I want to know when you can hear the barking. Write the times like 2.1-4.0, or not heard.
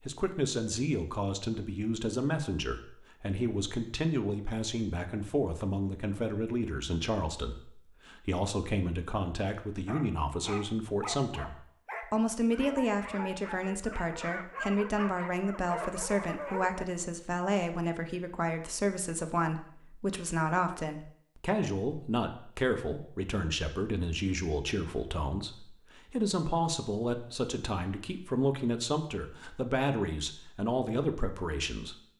9.8-16.9.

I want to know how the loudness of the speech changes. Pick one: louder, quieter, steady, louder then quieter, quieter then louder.
steady.